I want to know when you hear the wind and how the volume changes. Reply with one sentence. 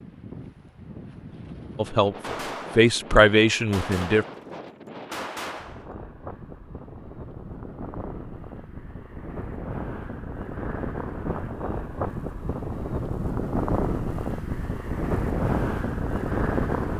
You can hear the wind from 0.0 to 16.9 s, getting louder.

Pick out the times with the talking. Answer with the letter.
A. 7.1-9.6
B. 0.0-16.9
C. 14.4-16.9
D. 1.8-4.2
D.